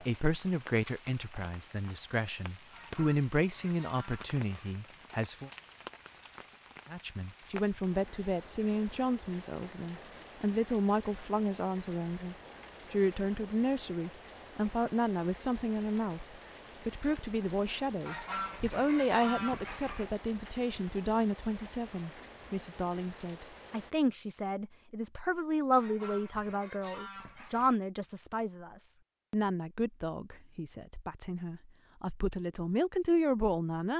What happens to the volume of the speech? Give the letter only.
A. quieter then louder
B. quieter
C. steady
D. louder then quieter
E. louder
C.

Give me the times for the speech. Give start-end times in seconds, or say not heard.
0.1-5.5, 6.9-33.9.